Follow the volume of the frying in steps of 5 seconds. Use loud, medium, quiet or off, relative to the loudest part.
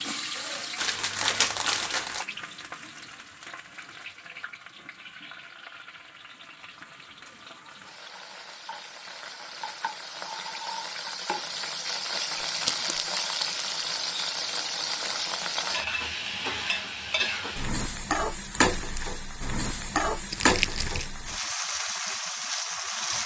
medium, quiet, loud, loud, loud.